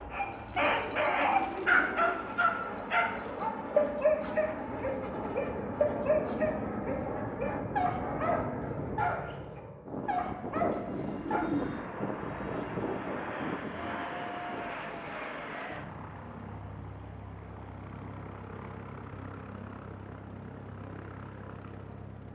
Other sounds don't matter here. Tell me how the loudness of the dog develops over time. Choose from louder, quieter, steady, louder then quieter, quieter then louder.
quieter.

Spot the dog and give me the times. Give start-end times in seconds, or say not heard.
0.1-11.5.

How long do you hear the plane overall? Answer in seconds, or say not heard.
22 s.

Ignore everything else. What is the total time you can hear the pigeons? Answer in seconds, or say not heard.
4 s.